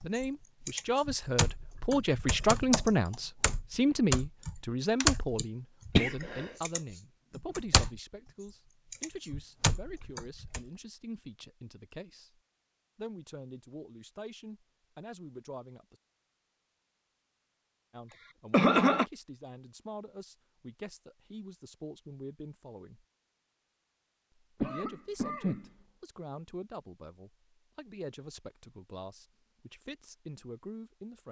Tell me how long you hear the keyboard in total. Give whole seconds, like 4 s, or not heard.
10 s.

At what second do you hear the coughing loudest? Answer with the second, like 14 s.
19 s.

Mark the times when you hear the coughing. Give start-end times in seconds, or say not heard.
6.0-6.5, 18.1-19.1, 24.6-25.7.